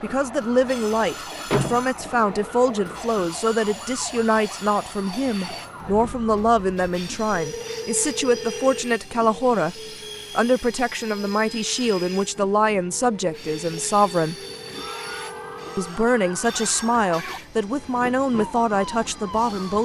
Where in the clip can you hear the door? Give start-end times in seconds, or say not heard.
1.5-2.2.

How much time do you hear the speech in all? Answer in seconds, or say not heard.
18 s.